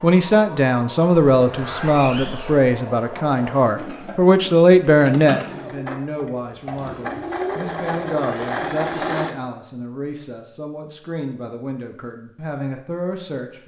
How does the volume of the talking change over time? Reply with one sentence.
The volume of the talking goes down.